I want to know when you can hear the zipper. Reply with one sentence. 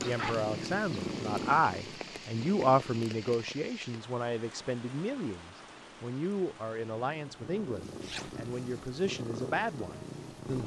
You can hear the zipper from 0.0 to 0.5 s and from 8.0 to 8.4 s.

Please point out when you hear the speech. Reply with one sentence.
The speech can be heard from 0.0 to 10.6 s.